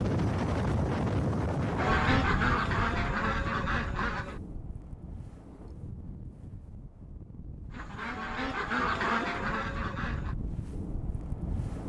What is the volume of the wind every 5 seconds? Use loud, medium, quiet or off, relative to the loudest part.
loud, quiet, medium.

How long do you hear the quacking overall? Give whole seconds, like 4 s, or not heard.
5 s.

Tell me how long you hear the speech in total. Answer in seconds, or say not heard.
not heard.